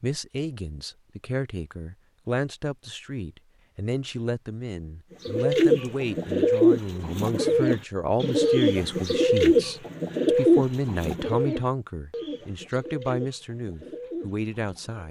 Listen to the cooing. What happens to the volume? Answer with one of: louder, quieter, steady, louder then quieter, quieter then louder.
quieter.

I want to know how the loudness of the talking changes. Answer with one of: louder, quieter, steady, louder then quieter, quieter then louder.
steady.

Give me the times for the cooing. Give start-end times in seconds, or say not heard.
5.2-15.0.